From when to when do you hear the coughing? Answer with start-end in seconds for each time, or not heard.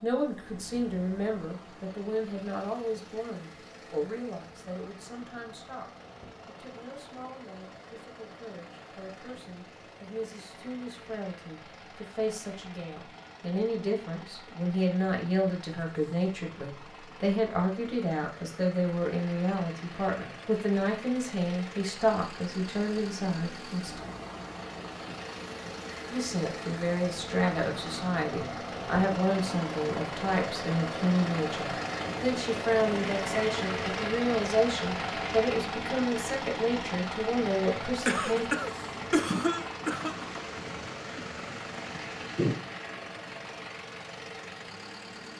38.0-40.2.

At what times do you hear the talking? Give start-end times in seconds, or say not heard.
0.0-24.0, 26.1-38.5.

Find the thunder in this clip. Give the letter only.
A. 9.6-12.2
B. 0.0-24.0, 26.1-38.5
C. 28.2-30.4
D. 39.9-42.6
D.